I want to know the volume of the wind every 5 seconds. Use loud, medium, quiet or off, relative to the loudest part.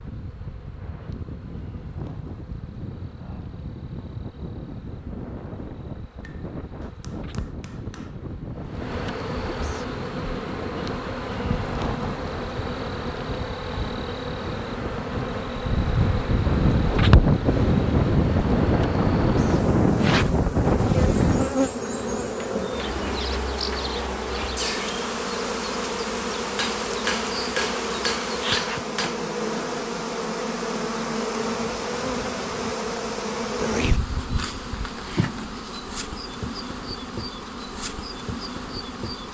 quiet, quiet, quiet, loud, loud, off, off, off.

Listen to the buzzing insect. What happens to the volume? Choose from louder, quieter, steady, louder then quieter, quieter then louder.
louder.